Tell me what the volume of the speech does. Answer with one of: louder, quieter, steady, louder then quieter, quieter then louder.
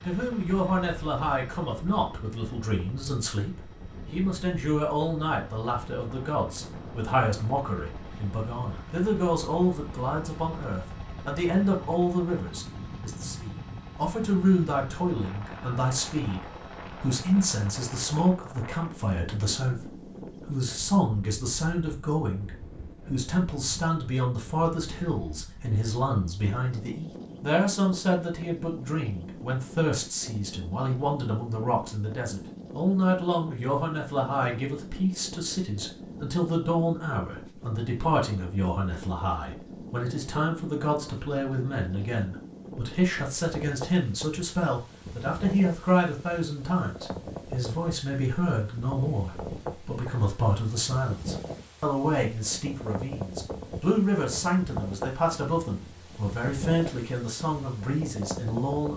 steady.